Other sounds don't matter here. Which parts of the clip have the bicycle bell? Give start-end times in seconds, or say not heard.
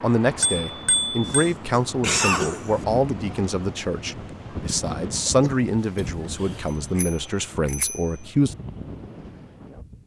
0.4-1.3, 7.0-8.1.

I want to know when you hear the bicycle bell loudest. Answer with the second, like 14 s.
1 s.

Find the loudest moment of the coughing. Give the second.
2 s.